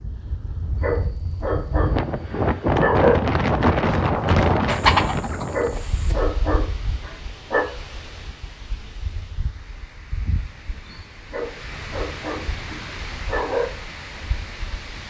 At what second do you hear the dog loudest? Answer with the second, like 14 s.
3 s.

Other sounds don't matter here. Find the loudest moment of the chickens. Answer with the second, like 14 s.
5 s.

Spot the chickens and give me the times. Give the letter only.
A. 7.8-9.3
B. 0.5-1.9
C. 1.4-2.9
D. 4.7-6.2
D.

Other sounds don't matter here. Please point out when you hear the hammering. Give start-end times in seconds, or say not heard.
not heard.